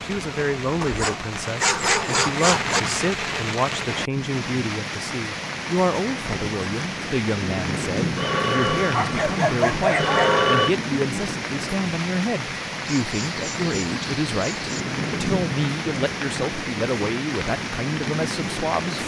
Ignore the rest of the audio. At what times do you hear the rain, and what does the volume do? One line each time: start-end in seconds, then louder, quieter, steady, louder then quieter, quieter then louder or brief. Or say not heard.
0.0-19.0 steady.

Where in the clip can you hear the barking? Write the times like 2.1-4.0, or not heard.
0.8-2.8, 8.9-10.5, 12.8-14.8.